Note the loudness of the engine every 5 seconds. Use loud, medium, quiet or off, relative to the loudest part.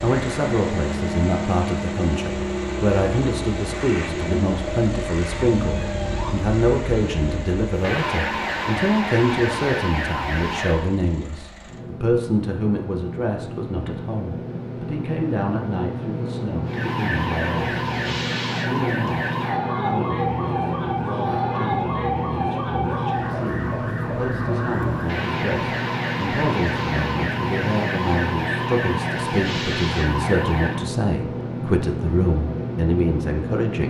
loud, medium, medium, loud, loud, loud, loud.